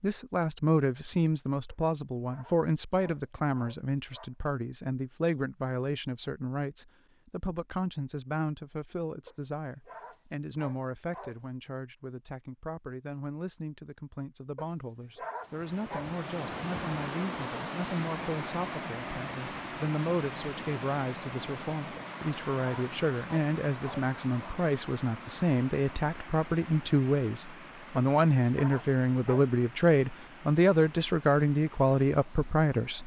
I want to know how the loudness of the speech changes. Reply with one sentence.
The volume of the speech goes down, then up.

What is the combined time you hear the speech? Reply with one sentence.
The speech can be heard for 33 seconds in total.